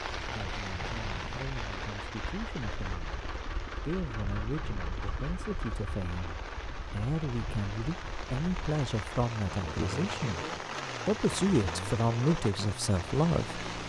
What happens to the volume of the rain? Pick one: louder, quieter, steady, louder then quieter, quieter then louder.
quieter then louder.